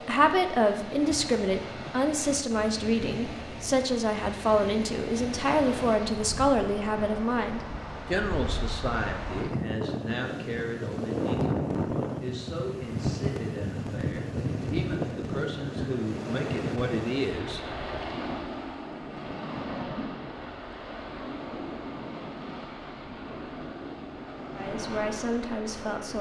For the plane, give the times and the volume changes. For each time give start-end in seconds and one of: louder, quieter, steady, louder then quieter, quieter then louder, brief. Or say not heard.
not heard.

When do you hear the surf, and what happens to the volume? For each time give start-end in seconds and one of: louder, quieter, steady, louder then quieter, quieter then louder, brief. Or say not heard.
0.0-26.1 louder then quieter.